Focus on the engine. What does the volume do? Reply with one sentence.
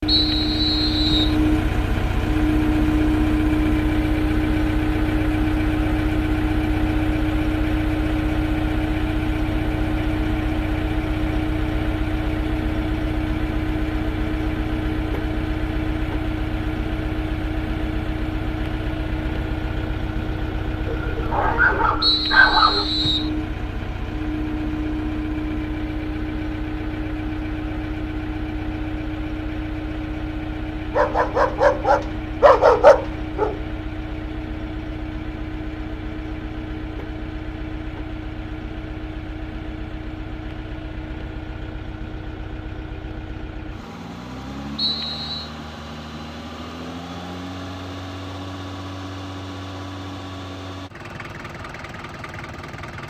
The volume of the engine goes down.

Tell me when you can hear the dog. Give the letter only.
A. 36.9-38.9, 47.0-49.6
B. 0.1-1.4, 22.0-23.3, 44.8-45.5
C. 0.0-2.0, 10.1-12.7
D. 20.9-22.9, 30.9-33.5
D.